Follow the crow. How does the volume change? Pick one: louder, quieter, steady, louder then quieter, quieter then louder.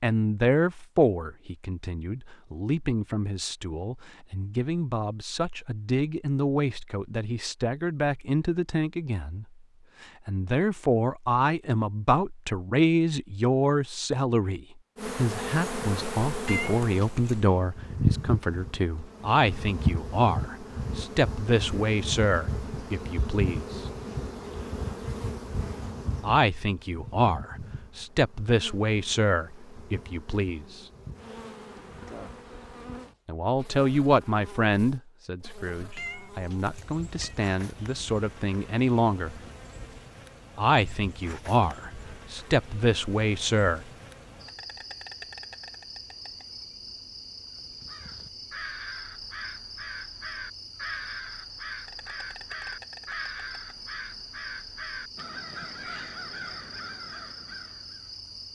steady.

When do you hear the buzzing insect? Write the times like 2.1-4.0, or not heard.
14.9-58.5.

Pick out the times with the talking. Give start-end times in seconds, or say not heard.
0.0-9.4, 10.2-23.8, 26.2-30.8, 33.2-39.4, 40.5-43.9.